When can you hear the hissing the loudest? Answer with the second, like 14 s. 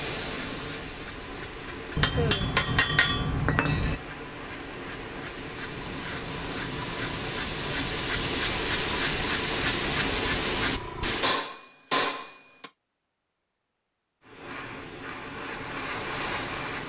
10 s.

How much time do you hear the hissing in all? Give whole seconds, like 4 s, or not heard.
14 s.